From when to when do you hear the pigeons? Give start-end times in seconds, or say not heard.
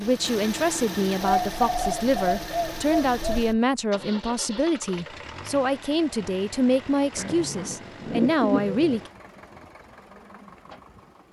1.2-3.6, 7.2-9.0.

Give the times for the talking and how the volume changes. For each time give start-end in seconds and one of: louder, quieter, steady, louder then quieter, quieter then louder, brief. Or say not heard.
0.0-9.1 steady.